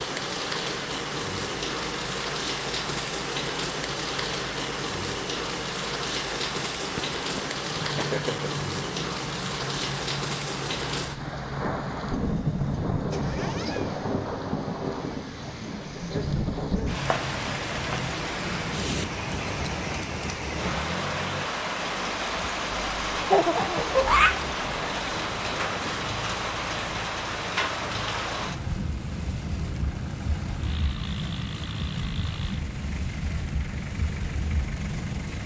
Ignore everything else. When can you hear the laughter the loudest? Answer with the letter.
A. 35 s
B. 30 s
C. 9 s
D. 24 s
D.